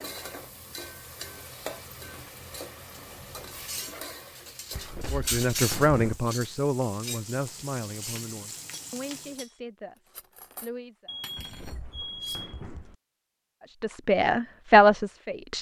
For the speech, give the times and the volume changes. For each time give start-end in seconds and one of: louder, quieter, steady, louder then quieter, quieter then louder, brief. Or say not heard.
5.1-11.2 quieter
13.8-15.5 brief.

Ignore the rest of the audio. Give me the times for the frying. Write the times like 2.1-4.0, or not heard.
0.0-9.4.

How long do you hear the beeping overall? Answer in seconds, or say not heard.
2 s.